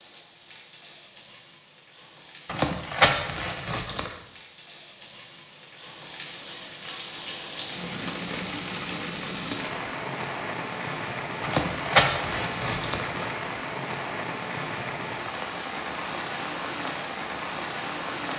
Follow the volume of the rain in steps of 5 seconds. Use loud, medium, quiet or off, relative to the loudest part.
quiet, loud, loud, loud.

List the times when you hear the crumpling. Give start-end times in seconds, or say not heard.
2.5-4.2, 11.4-13.3.